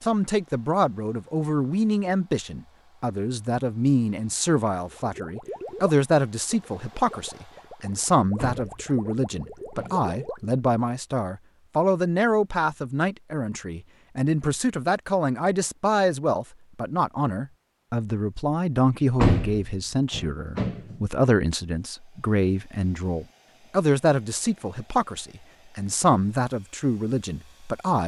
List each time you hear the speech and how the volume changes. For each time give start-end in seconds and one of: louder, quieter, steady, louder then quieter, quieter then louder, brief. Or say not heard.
0.0-28.0 steady.